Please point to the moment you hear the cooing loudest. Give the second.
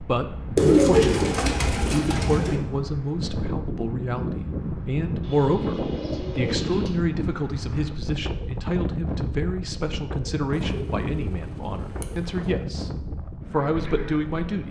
1 s.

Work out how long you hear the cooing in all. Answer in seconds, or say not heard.
6 s.